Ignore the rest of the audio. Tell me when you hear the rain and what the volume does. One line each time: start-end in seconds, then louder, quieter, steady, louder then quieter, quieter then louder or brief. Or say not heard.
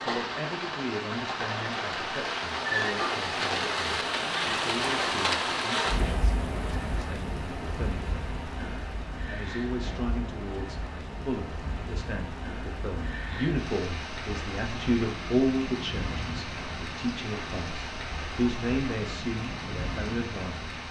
0.0-20.8 quieter.